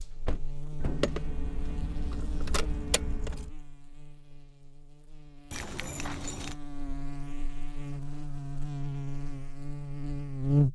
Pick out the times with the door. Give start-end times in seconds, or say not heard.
0.2-1.1.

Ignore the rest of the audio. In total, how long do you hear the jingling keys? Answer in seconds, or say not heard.
4 s.